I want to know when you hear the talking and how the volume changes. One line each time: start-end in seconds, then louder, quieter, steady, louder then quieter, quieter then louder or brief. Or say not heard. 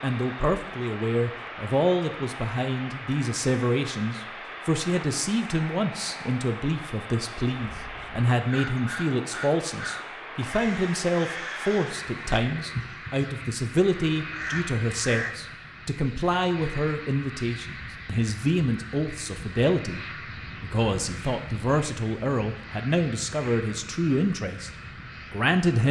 0.0-24.7 steady
25.3-25.8 brief.